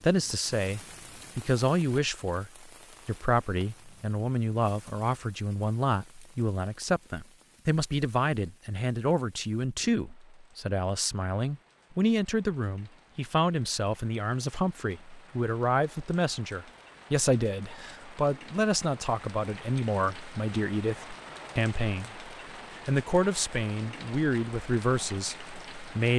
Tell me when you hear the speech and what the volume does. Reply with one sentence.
You can hear the speech from 0.0 to 26.1 s, at a steady volume.